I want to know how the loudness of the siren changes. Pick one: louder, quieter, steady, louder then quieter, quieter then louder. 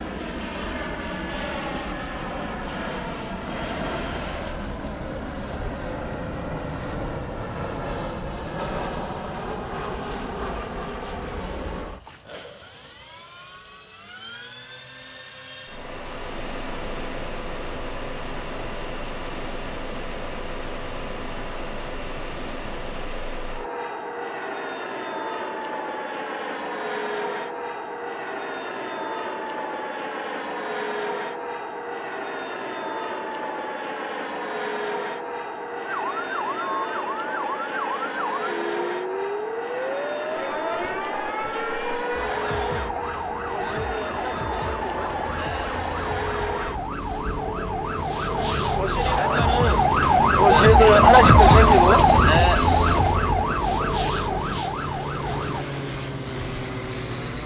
louder.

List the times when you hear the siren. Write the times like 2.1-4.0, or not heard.
35.8-55.6.